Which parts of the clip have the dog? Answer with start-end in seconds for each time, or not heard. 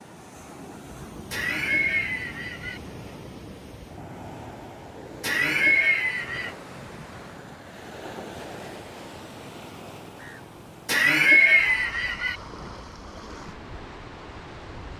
not heard.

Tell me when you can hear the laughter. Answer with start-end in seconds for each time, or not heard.
1.3-2.8, 5.2-6.5, 10.8-12.3.